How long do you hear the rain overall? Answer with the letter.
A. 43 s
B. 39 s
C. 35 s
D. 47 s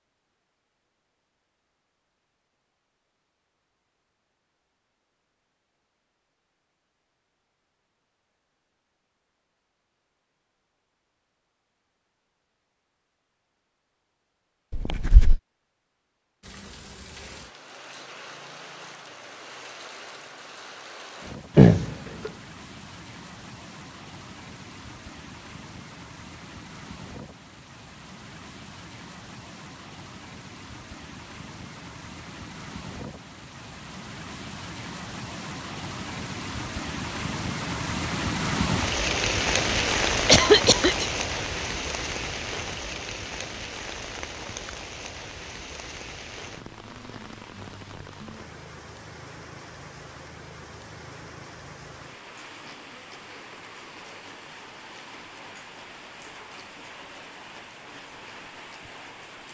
A.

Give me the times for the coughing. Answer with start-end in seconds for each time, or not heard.
14.7-15.4, 21.6-22.3, 40.2-41.0.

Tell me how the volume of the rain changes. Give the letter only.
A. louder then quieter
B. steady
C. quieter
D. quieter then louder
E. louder
A.